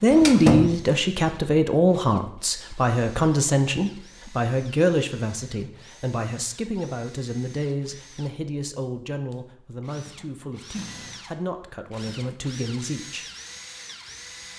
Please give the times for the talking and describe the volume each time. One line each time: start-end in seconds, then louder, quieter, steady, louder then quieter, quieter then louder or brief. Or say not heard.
0.0-13.2 quieter.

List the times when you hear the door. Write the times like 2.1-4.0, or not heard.
0.1-0.8.